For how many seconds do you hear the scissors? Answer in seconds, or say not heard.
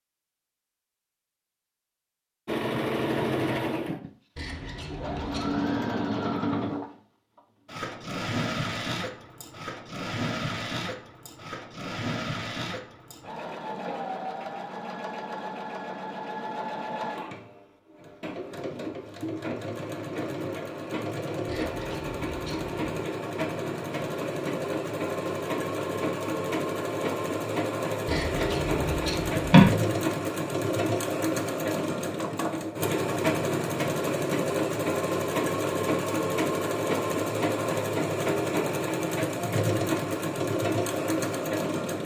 4 s.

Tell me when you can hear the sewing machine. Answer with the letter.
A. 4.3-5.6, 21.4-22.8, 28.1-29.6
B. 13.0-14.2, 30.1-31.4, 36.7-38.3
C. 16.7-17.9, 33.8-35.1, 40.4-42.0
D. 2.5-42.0
D.